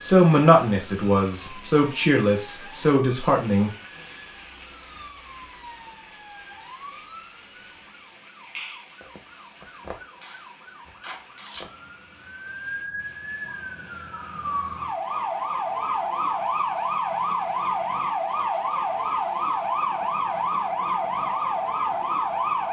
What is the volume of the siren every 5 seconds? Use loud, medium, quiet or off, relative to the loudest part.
quiet, quiet, medium, loud, loud.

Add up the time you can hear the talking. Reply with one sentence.
You can hear the talking for 4 seconds altogether.